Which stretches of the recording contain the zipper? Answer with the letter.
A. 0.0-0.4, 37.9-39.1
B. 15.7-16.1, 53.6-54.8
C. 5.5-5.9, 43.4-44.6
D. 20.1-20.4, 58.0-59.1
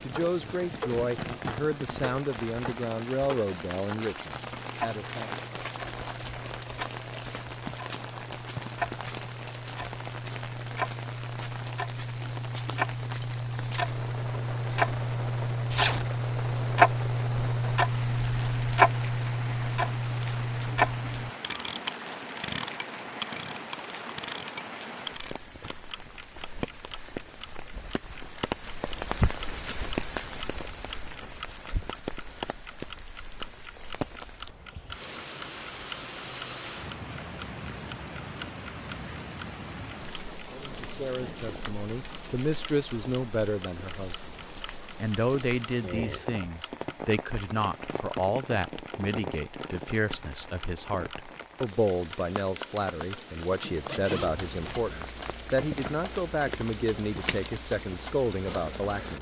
B.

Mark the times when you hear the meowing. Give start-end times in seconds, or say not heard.
not heard.